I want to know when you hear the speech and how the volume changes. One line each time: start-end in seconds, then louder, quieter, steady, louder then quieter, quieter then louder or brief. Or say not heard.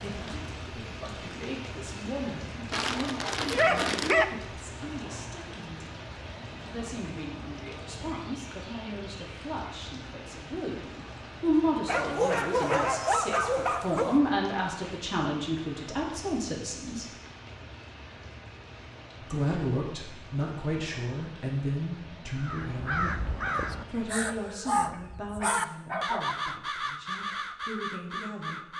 0.0-6.0 louder then quieter
6.7-17.1 louder
19.2-28.6 quieter.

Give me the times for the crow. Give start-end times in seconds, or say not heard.
22.4-28.7.